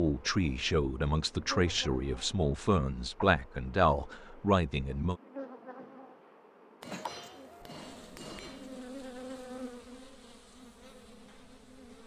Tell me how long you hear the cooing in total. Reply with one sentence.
The cooing can be heard for 2 seconds in total.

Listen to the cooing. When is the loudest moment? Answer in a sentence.
The loudest moment of the cooing is at 7 seconds.